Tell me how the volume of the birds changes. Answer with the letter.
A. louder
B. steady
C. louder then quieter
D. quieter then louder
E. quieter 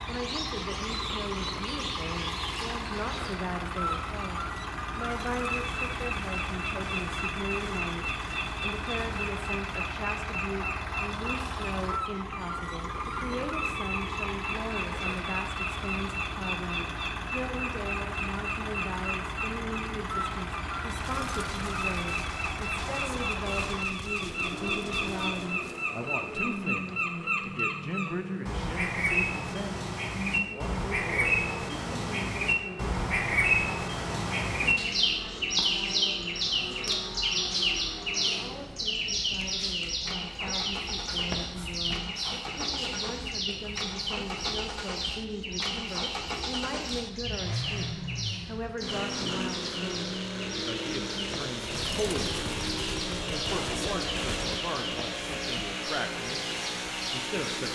C.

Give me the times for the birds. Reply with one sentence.
The birds can be heard from 0.0 to 57.7 s.